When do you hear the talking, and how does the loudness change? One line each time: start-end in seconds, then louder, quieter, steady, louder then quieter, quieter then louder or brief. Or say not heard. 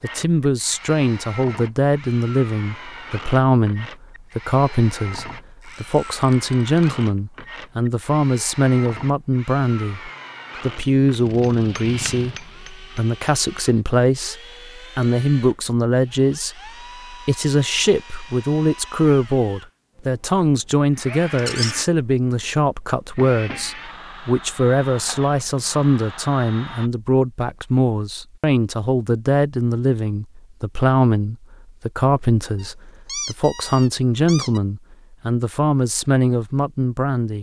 0.0-37.3 steady.